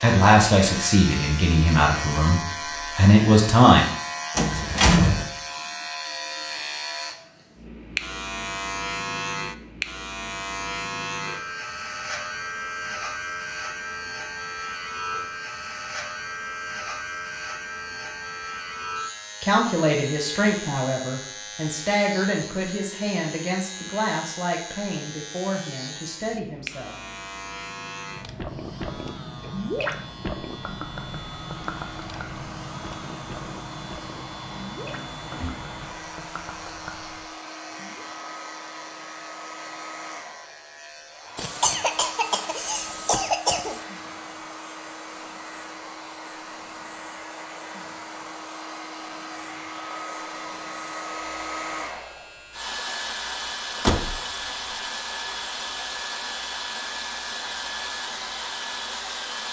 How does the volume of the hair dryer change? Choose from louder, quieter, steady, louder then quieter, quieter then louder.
louder.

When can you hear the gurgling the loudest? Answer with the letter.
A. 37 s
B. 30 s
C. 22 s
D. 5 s
B.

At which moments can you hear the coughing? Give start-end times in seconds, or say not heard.
41.4-43.8.